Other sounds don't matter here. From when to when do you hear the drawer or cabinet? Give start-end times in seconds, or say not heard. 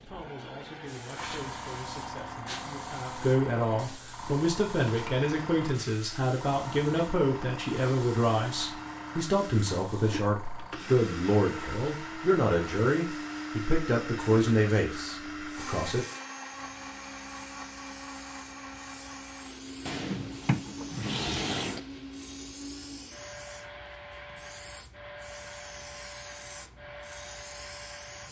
19.9-21.8.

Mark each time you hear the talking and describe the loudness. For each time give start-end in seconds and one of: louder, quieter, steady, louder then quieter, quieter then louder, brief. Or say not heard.
0.1-16.1 louder.